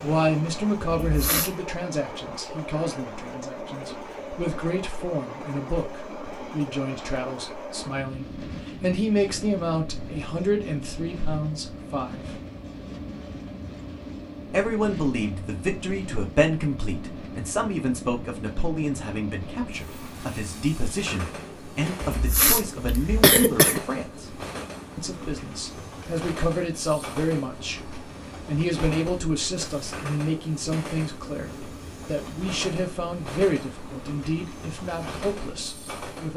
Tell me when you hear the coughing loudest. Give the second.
23 s.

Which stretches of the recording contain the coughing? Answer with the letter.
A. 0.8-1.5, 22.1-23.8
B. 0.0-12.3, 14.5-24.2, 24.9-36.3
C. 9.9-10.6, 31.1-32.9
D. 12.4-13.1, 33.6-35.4
A.